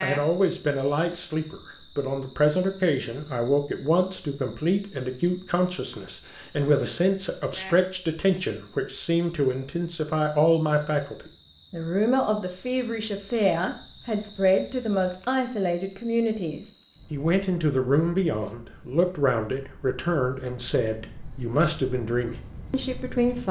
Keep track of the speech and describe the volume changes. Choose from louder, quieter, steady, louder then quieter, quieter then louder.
steady.